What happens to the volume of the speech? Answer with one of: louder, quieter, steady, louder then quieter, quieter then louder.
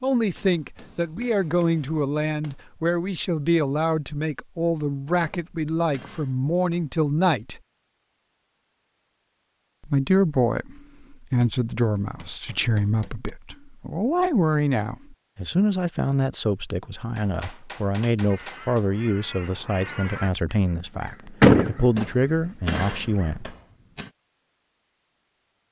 steady.